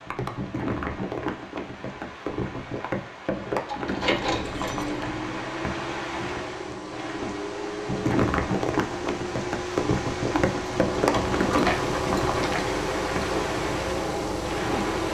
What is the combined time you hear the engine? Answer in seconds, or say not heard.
11 s.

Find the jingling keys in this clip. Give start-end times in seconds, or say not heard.
3.6-5.1, 10.3-12.6.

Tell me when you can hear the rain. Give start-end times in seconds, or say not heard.
0.0-15.0.